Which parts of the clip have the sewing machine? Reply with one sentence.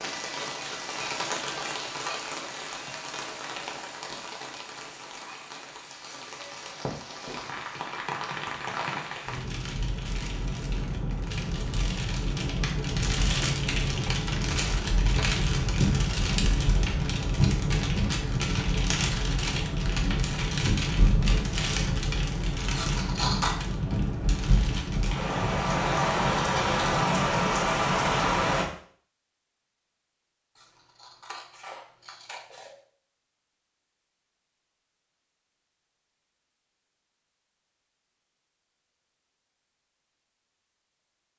You can't hear the sewing machine here.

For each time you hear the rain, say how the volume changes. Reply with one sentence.
You can hear the rain from 0.0 to 28.6 s, getting louder.